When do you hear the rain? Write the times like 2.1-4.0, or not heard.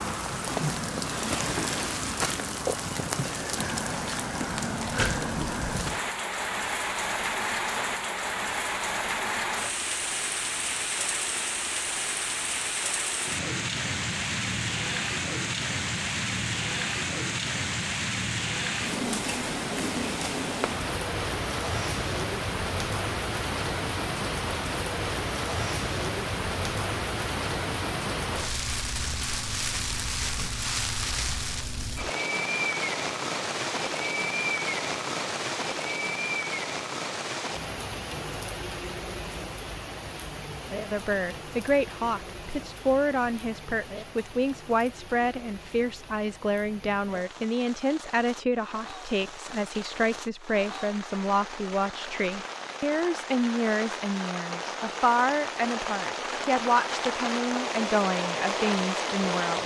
0.0-59.6.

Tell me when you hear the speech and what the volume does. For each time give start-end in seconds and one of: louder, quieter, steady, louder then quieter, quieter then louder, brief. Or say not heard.
40.8-59.6 steady.